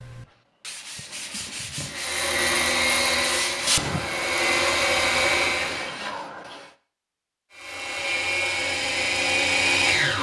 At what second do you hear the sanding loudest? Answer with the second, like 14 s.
4 s.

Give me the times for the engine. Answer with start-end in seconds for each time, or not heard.
1.9-5.9, 7.5-10.1.